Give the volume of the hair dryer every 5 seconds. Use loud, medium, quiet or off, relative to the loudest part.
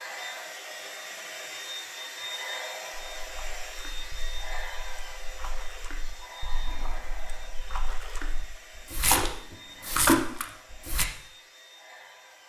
loud, medium, quiet.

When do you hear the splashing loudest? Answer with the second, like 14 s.
10 s.